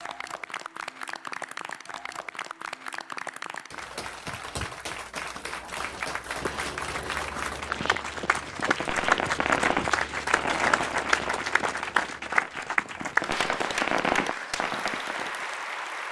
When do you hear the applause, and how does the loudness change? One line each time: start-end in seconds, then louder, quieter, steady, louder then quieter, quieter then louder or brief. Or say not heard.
0.0-16.0 louder.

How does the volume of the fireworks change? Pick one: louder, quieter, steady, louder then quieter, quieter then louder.
quieter then louder.